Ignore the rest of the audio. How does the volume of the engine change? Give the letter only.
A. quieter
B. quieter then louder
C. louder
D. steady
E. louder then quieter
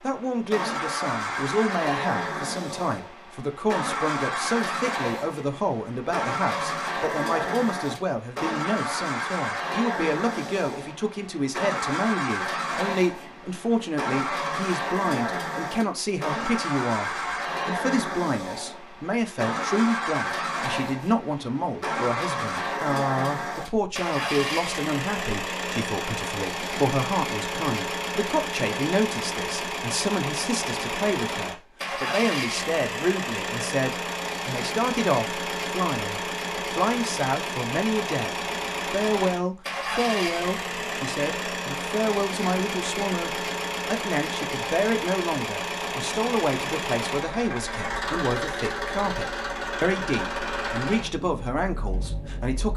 D.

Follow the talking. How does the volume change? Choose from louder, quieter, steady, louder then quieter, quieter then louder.
steady.